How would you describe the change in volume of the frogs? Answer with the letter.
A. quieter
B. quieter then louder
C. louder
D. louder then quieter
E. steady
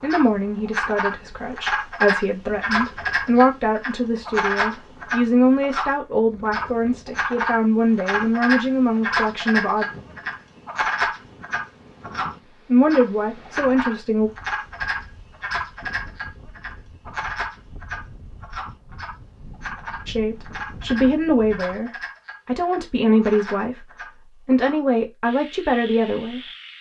A.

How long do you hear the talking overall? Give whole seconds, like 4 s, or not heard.
18 s.